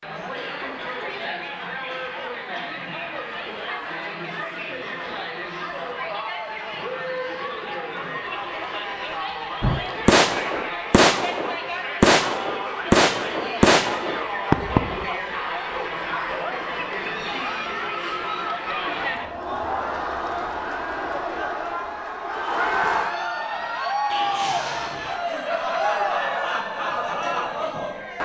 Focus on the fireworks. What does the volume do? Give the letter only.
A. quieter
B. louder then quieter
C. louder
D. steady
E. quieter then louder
D.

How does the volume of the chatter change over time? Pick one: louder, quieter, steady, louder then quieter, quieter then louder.
louder.